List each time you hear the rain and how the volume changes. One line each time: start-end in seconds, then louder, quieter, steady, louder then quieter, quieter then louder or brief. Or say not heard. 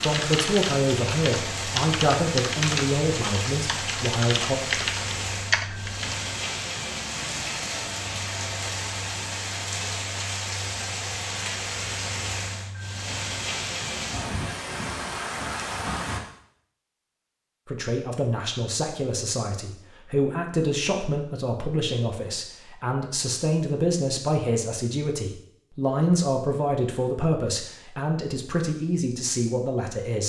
0.0-16.2 steady.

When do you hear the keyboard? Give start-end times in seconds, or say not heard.
0.0-6.2.